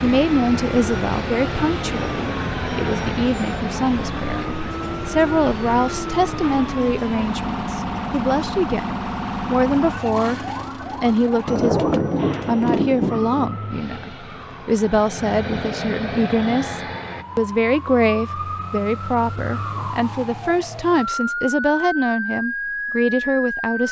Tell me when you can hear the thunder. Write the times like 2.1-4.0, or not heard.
11.4-13.5.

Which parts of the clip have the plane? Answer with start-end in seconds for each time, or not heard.
0.0-4.5, 12.2-17.2.